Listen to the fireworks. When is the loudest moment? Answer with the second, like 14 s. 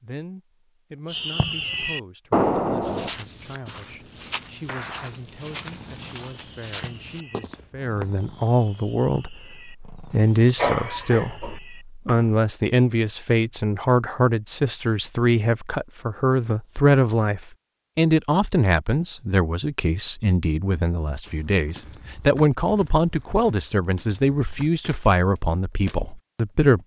2 s.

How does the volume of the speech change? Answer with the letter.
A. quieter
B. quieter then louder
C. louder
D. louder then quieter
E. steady
C.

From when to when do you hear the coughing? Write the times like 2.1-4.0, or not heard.
10.6-11.6.